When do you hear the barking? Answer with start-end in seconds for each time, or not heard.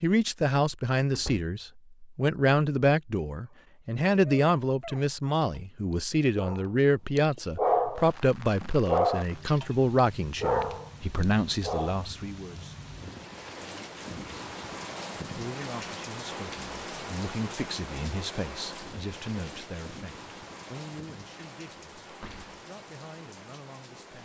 3.5-12.0.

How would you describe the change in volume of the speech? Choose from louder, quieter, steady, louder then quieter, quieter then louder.
quieter.